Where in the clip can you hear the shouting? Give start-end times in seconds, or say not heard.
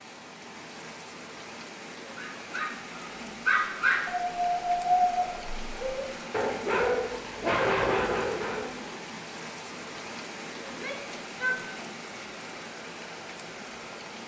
10.7-11.8.